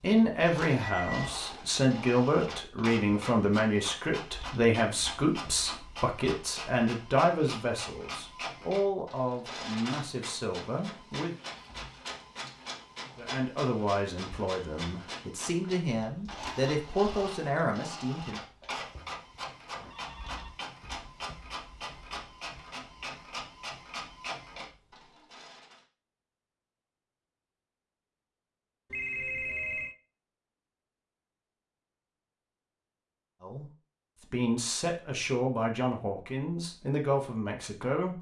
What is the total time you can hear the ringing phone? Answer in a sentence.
You can hear the ringing phone for 2 seconds altogether.